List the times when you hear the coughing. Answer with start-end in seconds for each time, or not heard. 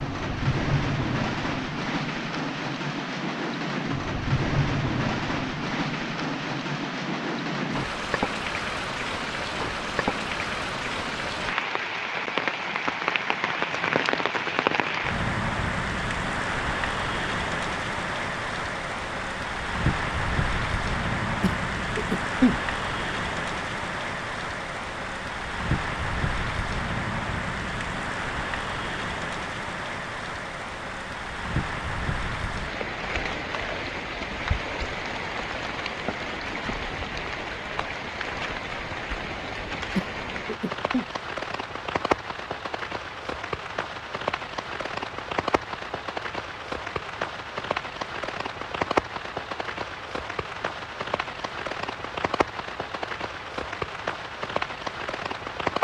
21.4-22.6, 40.0-41.0.